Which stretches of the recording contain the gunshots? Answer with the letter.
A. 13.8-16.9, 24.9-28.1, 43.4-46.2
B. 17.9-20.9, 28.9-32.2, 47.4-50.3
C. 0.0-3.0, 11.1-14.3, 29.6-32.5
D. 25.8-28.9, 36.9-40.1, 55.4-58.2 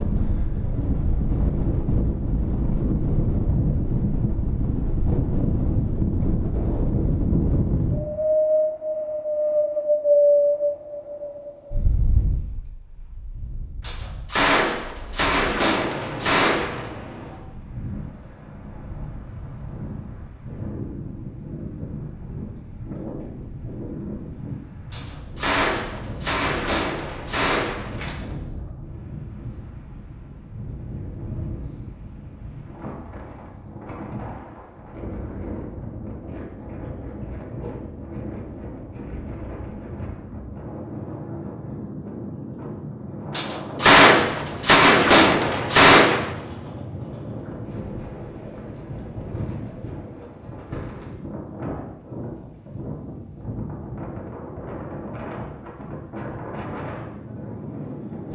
A.